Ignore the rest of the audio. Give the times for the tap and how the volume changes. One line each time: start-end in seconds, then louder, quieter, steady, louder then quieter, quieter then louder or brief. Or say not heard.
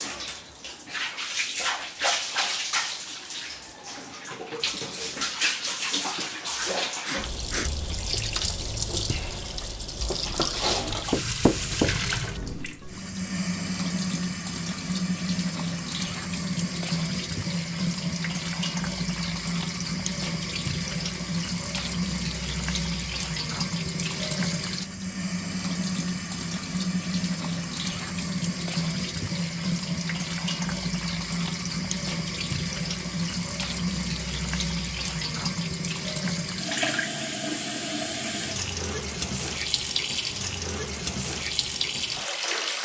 0.0-42.8 steady.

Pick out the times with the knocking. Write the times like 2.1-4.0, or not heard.
11.1-12.4.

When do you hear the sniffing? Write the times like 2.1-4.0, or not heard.
6.3-7.7.